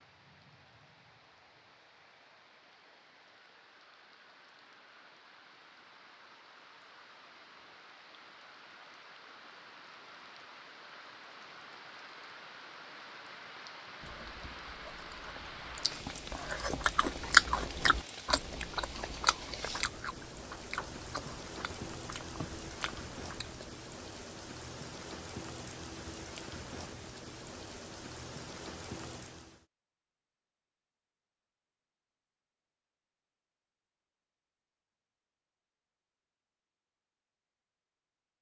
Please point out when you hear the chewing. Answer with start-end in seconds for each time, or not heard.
14.0-23.6.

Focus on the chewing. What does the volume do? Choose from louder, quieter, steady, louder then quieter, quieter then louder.
louder then quieter.